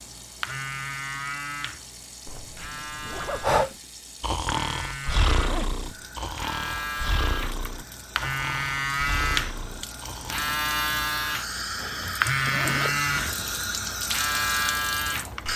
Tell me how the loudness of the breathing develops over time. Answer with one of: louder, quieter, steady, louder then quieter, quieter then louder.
quieter.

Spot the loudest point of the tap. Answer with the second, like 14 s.
14 s.